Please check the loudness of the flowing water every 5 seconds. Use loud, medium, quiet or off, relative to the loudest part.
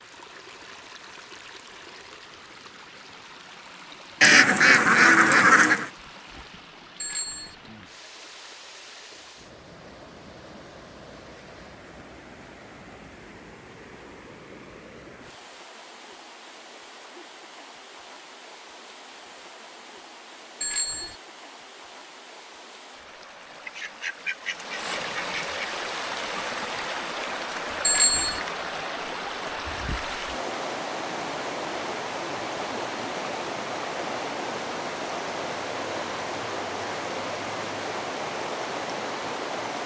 quiet, quiet, quiet, quiet, medium, loud, loud, loud.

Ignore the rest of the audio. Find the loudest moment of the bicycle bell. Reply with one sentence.
The volume of the bicycle bell peaks at 28 seconds.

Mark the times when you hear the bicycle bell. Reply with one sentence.
You can hear the bicycle bell from 7.0 to 7.5 s, from 20.6 to 21.1 s and from 27.8 to 28.4 s.